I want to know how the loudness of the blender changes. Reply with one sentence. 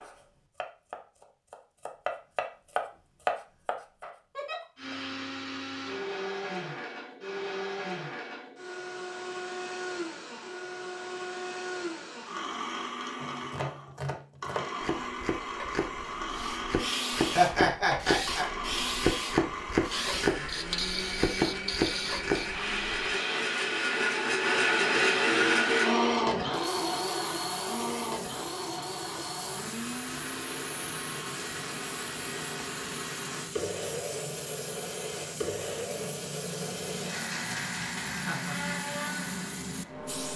The loudness of the blender goes up, then down.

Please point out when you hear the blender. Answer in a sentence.
You can hear the blender from 4.8 to 40.1 s.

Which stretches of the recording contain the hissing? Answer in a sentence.
The hissing can be heard from 16.3 to 40.3 s.